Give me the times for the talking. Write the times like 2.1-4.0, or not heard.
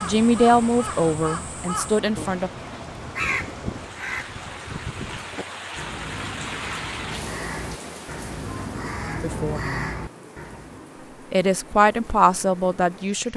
0.0-2.5, 9.2-9.8, 11.3-13.3.